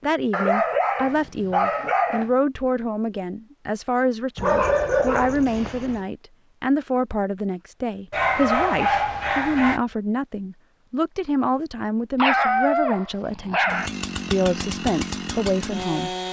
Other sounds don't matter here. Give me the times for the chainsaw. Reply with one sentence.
The chainsaw can be heard from 13.7 to 16.2 s.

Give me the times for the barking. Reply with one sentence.
The barking can be heard from 0.3 to 2.3 s, from 4.3 to 6.0 s, from 8.1 to 9.8 s and from 12.2 to 13.9 s.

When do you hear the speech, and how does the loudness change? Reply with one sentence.
You can hear the speech from 0.0 to 16.1 s, at a steady volume.